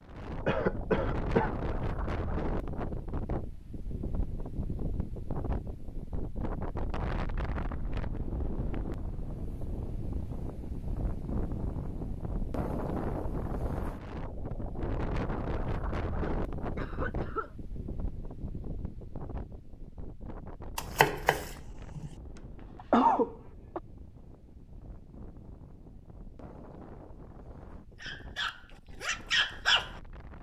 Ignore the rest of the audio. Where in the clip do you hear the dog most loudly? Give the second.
30 s.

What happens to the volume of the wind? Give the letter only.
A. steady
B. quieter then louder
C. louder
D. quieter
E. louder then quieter
D.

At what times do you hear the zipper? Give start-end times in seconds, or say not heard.
not heard.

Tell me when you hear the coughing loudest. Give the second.
23 s.